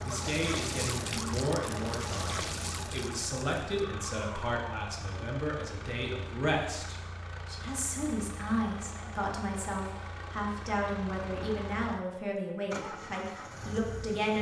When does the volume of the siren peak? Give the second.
1 s.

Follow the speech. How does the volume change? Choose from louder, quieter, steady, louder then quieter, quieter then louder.
steady.